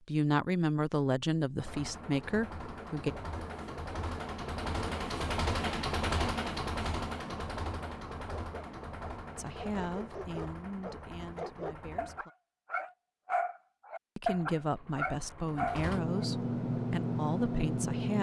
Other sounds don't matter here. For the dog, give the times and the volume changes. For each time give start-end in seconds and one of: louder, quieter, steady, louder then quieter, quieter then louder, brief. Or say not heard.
8.2-16.2 louder.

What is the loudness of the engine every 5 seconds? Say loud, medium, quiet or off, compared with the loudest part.
medium, loud, quiet, loud.